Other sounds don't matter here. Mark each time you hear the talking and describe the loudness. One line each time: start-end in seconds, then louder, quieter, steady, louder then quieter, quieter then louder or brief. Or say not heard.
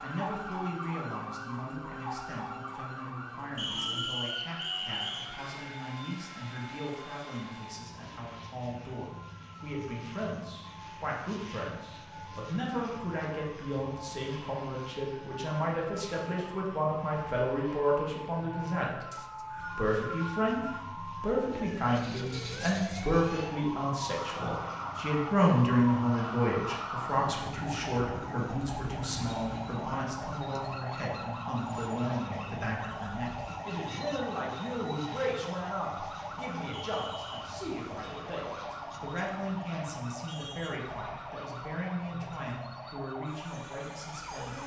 0.0-44.6 louder then quieter.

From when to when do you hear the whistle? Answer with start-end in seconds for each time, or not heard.
3.5-5.3, 19.1-20.8, 36.7-37.5.